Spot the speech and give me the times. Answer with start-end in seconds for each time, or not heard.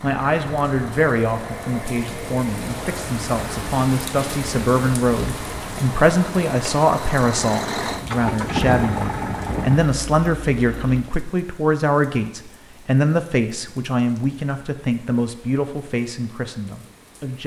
0.0-17.4.